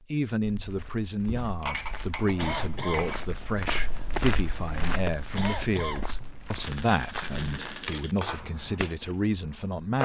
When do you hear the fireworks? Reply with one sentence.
You can hear the fireworks from 6.6 to 10.0 s.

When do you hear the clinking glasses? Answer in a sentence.
You can hear the clinking glasses from 1.4 to 3.2 s and from 7.2 to 8.5 s.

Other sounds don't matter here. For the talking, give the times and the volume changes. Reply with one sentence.
You can hear the talking from 0.1 to 10.0 s, at a steady volume.